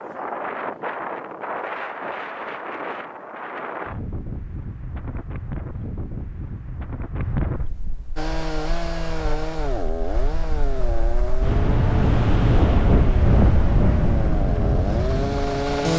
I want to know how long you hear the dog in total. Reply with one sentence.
You can't hear the dog here.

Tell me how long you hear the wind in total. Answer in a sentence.
The wind can be heard for 16 seconds in total.